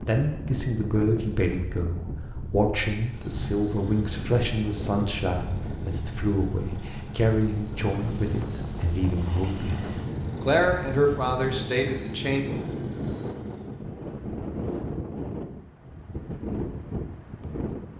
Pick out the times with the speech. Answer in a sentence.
You can hear the speech from 0.0 to 12.4 s.